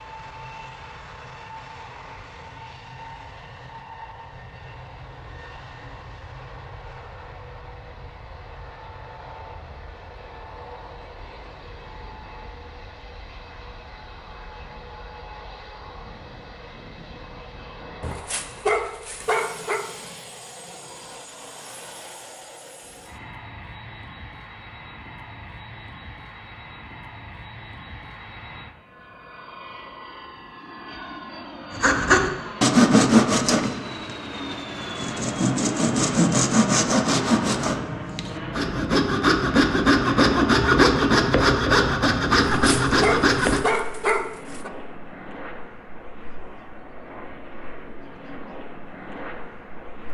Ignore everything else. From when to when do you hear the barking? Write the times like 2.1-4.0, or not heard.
18.0-19.9, 42.5-44.7.